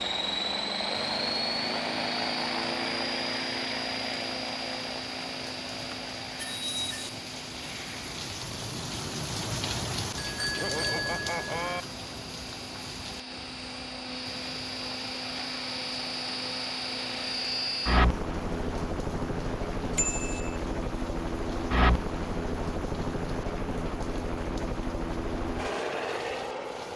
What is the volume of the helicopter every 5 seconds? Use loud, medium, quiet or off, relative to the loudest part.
loud, medium, medium, loud, loud, loud.